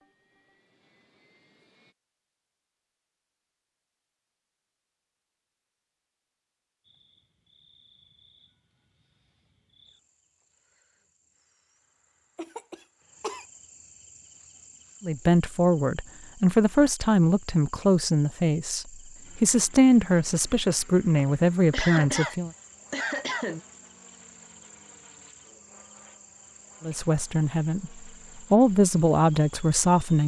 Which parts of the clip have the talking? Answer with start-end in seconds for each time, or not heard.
15.0-22.5, 26.8-30.2.